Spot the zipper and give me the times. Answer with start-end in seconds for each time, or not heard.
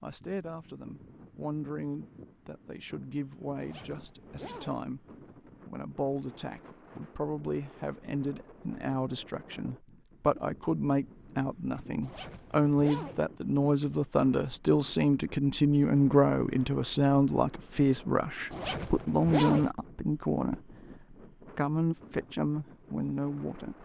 3.5-4.8, 12.0-13.2, 18.5-19.7.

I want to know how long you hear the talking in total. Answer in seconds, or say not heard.
23 s.